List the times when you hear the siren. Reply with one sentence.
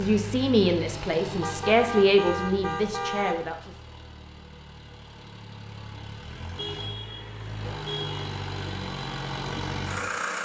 The siren can't be heard in this clip.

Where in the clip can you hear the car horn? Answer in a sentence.
The car horn can be heard from 1.4 to 3.5 s and from 6.5 to 8.2 s.